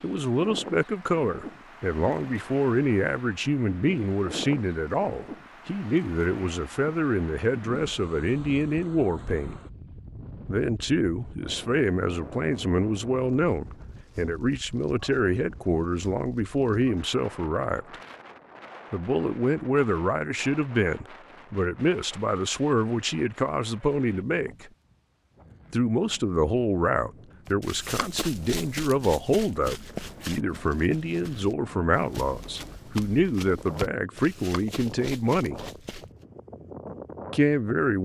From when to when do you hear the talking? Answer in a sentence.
You can hear the talking from 0.0 to 9.6 s, from 10.4 to 17.9 s, from 18.9 to 24.7 s, from 25.7 to 35.6 s and from 37.3 to 38.0 s.